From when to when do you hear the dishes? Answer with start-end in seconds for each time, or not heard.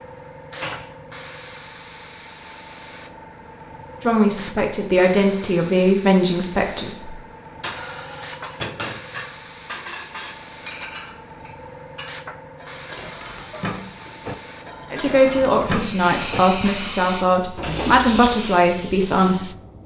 7.6-16.9.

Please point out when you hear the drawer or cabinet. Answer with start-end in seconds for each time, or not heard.
0.5-1.1, 17.6-18.1.